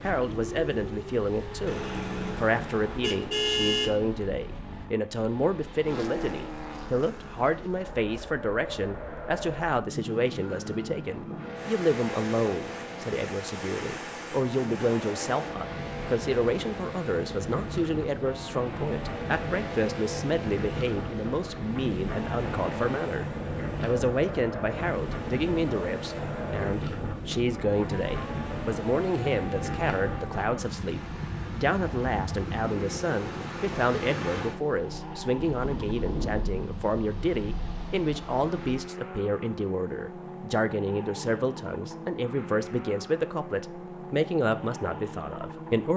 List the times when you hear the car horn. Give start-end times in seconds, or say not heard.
1.6-4.1.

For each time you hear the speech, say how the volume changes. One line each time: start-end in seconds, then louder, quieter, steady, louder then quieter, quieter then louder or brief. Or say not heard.
0.0-45.9 steady.